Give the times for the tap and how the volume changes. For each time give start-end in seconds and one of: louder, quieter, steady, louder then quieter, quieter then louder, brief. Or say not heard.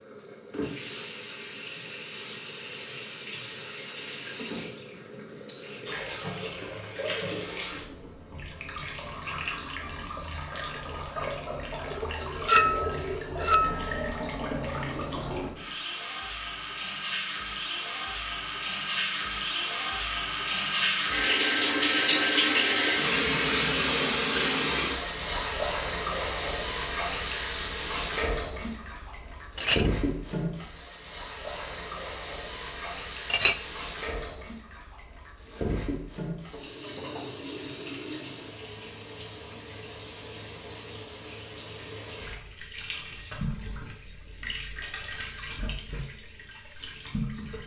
0.0-47.6 louder then quieter.